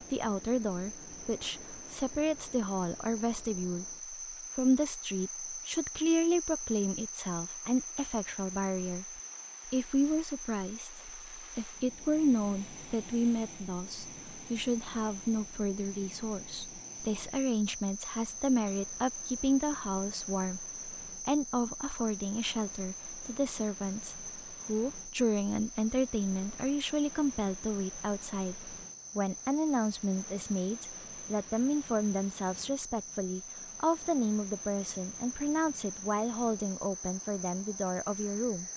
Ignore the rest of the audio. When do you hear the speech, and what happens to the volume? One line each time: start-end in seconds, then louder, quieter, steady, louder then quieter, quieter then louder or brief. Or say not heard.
0.0-38.6 steady.